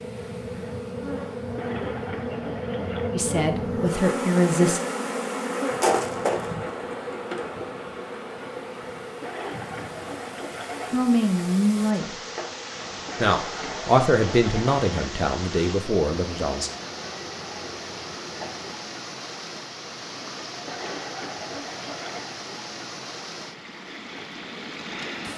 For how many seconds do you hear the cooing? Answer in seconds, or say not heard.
7 s.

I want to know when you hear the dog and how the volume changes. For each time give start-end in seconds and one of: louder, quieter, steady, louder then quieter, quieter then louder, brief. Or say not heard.
not heard.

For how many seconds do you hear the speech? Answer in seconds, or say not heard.
6 s.